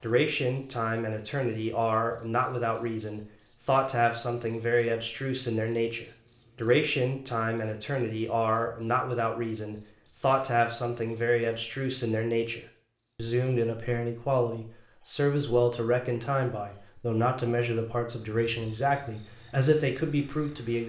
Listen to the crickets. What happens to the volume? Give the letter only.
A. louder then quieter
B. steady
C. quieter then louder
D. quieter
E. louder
D.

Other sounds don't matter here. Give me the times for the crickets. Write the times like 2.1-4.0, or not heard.
0.0-20.8.